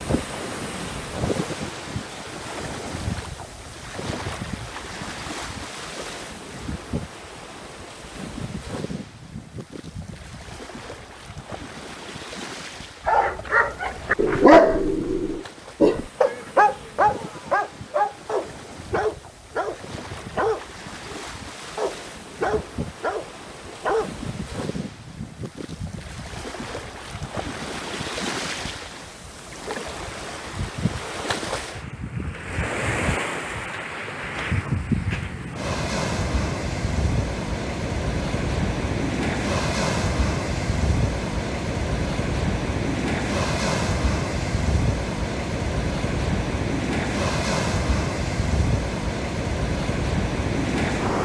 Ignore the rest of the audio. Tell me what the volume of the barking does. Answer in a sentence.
The volume of the barking goes down.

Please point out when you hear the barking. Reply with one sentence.
The barking can be heard from 13.1 to 24.1 s.